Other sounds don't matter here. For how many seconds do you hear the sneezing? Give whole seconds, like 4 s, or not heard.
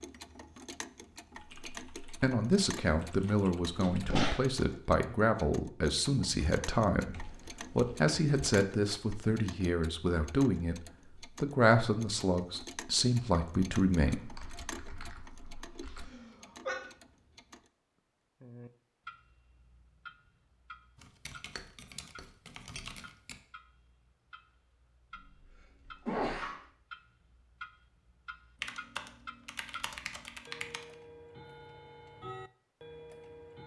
2 s.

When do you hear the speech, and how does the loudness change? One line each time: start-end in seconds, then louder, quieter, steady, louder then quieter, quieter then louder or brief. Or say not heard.
2.2-14.3 steady.